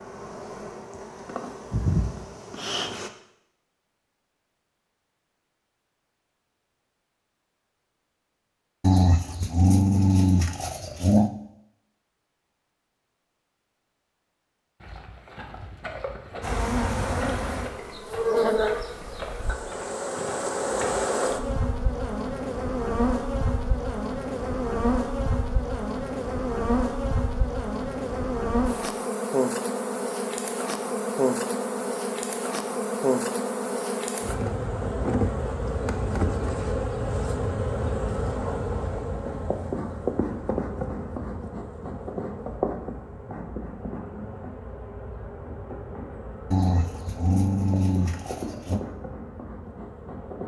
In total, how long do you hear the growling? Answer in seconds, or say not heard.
5 s.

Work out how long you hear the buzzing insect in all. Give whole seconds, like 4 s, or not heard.
37 s.